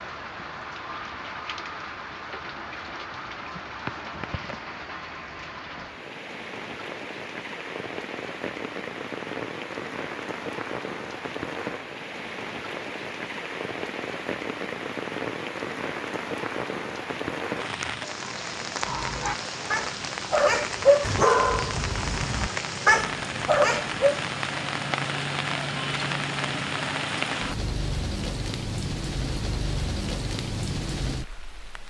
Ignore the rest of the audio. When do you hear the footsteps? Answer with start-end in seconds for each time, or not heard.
not heard.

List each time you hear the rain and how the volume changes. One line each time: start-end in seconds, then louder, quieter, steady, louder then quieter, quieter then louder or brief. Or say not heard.
0.0-31.8 louder.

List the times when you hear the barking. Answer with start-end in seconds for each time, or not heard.
18.8-24.2.